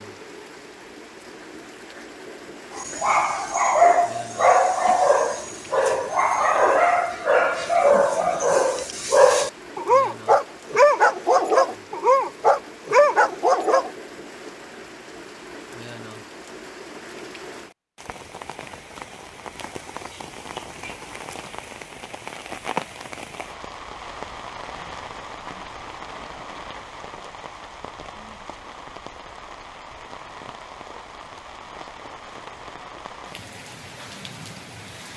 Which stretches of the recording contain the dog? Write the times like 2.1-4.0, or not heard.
2.8-13.9.